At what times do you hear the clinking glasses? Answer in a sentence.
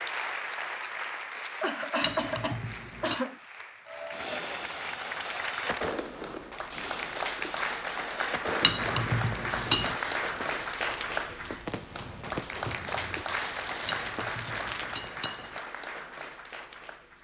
You can hear the clinking glasses from 2.0 to 3.2 s, from 8.6 to 9.9 s and from 13.8 to 15.5 s.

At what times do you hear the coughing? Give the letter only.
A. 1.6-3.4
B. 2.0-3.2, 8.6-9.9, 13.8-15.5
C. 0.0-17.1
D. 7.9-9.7
A.